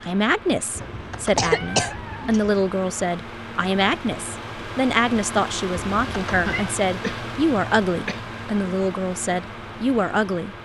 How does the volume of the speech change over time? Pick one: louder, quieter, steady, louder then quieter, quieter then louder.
steady.